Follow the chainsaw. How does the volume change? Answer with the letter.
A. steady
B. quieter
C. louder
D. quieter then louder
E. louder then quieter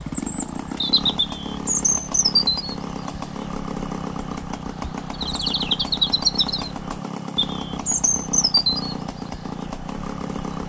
A.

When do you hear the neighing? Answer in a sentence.
You can't hear the neighing here.